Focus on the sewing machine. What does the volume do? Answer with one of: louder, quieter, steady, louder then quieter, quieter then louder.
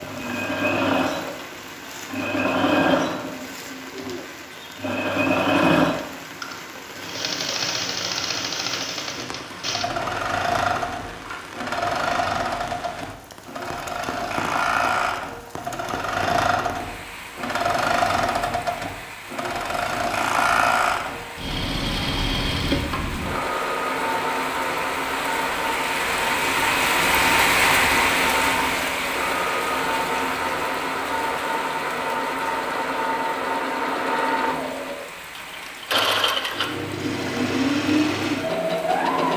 steady.